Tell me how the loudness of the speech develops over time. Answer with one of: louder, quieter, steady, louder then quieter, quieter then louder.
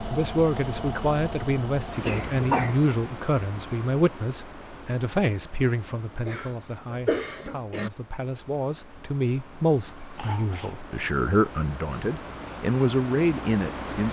quieter then louder.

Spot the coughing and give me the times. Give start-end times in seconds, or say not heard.
2.0-2.8, 6.2-7.9, 10.2-10.8.